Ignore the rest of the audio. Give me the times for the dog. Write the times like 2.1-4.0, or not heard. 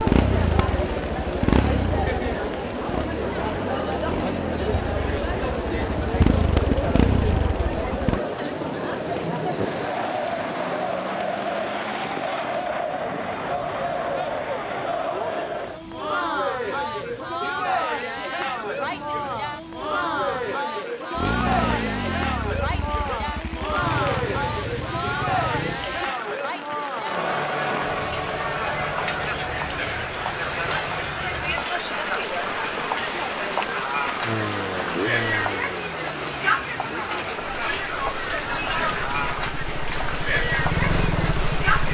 not heard.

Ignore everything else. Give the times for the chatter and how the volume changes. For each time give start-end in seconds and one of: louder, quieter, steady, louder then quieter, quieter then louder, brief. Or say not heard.
0.0-41.8 steady.